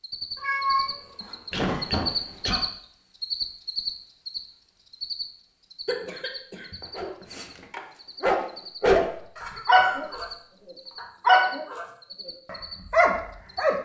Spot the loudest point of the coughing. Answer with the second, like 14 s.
2 s.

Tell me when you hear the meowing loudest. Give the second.
1 s.